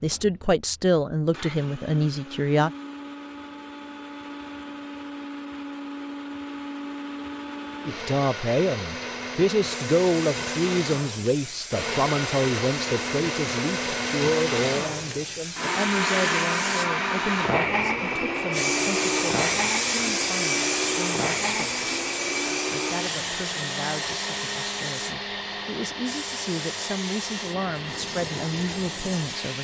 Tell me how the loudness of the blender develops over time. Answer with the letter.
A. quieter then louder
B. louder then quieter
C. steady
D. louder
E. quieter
B.